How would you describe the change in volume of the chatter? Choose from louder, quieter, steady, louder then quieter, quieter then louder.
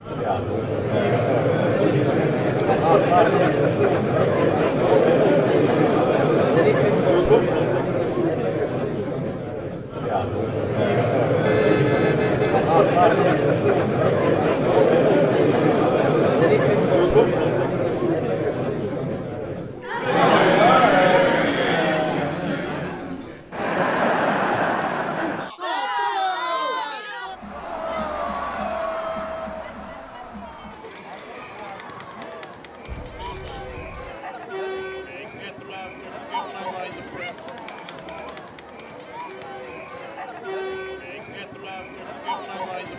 quieter.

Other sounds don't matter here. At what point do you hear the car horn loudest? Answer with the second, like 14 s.
12 s.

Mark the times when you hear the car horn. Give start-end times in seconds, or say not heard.
11.4-12.6, 32.9-34.1.